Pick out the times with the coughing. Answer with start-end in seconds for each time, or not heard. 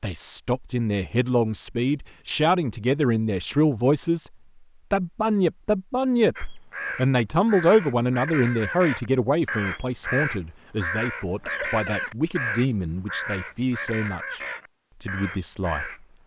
11.3-12.1.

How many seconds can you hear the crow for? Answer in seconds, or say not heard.
10 s.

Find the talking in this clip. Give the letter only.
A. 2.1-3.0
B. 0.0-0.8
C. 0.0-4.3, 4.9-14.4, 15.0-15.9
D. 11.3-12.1
C.